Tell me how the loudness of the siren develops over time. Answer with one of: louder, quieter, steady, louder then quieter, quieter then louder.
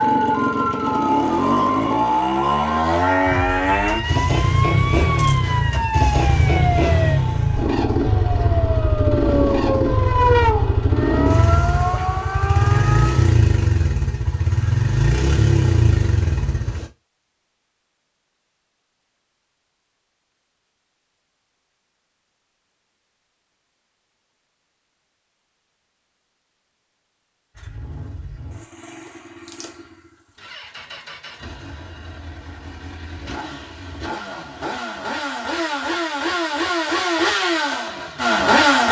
steady.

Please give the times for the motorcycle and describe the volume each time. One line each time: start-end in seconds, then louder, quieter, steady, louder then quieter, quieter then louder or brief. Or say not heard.
0.0-16.9 steady
27.6-38.8 louder.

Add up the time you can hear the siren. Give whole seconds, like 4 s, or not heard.
13 s.